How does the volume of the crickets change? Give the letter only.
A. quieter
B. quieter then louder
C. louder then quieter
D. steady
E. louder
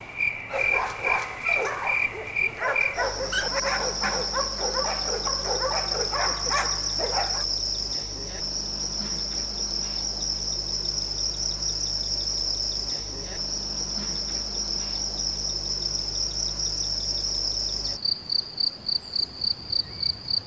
D.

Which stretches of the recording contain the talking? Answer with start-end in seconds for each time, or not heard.
not heard.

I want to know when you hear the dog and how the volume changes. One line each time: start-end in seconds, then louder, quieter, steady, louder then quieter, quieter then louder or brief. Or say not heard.
0.5-7.5 steady.